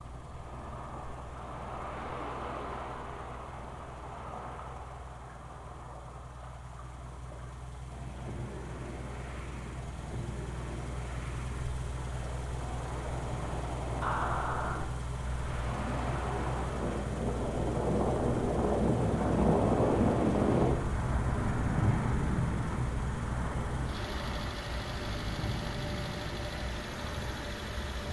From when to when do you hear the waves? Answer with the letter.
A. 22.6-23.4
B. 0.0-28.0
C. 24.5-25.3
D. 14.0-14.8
B.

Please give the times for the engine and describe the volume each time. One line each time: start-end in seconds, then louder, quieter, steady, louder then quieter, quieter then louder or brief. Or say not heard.
0.0-28.0 louder.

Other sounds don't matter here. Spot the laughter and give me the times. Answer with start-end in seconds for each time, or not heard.
14.0-14.8.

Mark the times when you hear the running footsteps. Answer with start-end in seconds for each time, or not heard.
not heard.